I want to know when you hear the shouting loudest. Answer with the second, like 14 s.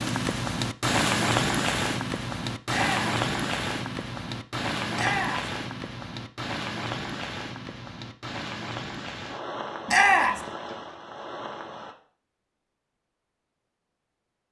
10 s.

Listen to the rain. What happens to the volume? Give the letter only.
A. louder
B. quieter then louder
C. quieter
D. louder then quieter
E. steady
C.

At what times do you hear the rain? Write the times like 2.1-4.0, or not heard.
0.0-11.9.